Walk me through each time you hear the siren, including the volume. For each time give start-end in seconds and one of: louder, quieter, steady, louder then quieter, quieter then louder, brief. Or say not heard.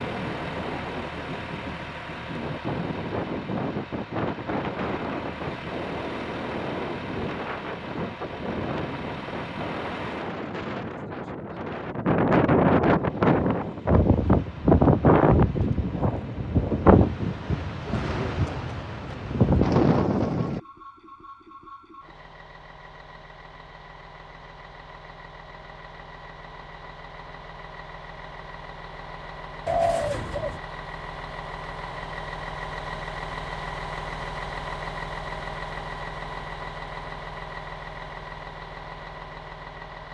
not heard.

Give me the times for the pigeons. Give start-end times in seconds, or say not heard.
29.6-30.6.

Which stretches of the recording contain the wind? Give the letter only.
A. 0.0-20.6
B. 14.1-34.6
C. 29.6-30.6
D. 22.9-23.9
A.